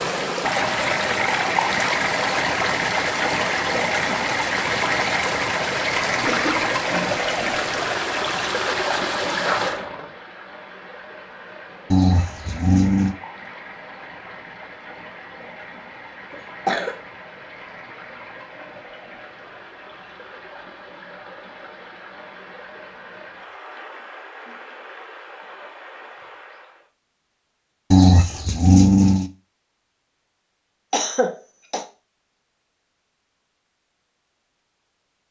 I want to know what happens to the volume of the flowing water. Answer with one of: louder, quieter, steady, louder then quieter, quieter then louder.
quieter.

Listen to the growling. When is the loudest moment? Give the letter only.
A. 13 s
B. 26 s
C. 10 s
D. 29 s
D.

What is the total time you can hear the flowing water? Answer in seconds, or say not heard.
27 s.